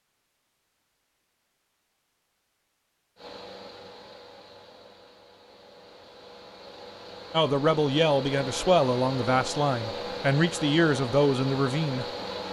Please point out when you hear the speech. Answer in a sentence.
You can hear the speech from 7.3 to 12.1 s.